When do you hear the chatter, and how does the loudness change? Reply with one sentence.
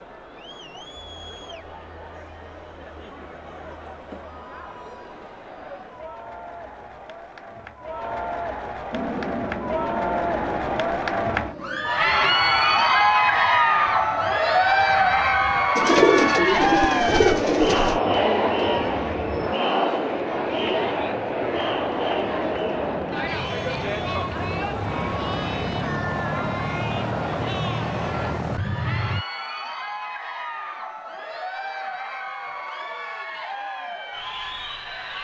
The chatter can be heard from 0.0 to 35.1 s, getting louder then quieter.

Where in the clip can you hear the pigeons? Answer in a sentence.
The pigeons can be heard from 15.8 to 18.0 s.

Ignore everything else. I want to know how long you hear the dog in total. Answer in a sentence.
The dog can't be heard in this clip.